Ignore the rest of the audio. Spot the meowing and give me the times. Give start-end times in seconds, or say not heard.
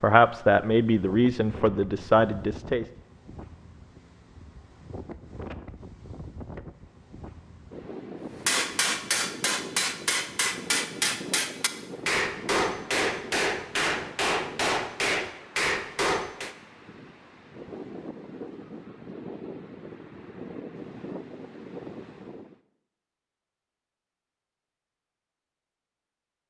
not heard.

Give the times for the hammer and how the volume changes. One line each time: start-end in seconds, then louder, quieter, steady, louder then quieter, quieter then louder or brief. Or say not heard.
8.2-16.6 steady.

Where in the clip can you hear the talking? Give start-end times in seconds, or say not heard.
0.0-2.9.